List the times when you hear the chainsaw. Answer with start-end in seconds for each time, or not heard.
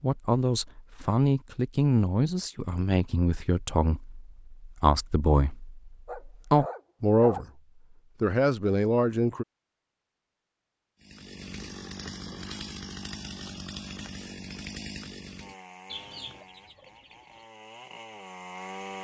11.0-18.9.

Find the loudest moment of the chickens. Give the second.
16 s.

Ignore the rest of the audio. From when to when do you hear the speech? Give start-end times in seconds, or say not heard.
0.0-7.5, 8.2-9.4.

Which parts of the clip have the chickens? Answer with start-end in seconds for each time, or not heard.
15.8-17.4.